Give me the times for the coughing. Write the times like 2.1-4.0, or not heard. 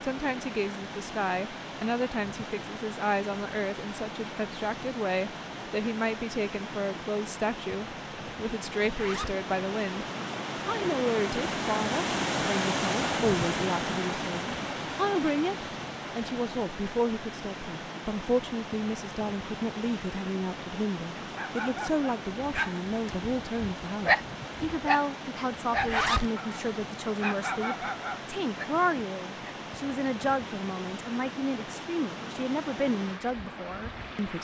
not heard.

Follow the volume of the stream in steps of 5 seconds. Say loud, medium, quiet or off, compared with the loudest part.
medium, medium, loud, medium, medium, medium, medium.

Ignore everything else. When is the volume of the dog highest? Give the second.
24 s.